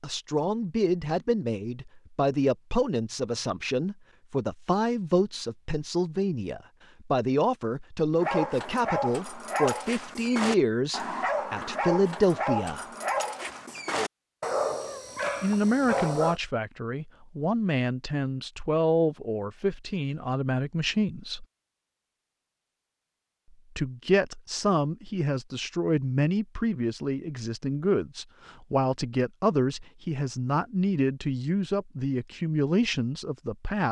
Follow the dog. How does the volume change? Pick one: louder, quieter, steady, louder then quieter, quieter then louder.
steady.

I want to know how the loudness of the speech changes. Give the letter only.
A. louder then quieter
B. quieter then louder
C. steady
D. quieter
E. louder
C.